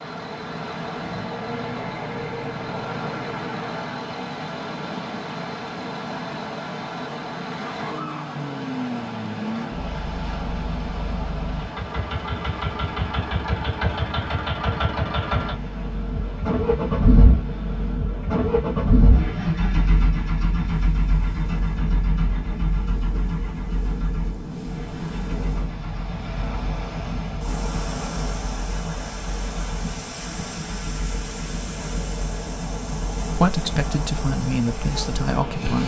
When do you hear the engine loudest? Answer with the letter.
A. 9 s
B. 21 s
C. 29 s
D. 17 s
D.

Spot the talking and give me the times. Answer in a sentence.
The talking can be heard from 33.4 to 35.8 s.